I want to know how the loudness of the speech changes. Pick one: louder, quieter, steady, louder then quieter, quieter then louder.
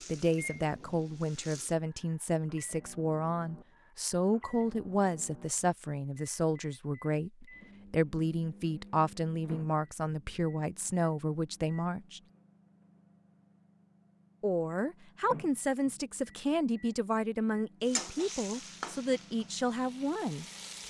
steady.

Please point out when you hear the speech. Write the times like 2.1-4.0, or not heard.
0.1-12.2, 14.4-20.4.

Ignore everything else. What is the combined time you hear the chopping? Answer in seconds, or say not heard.
not heard.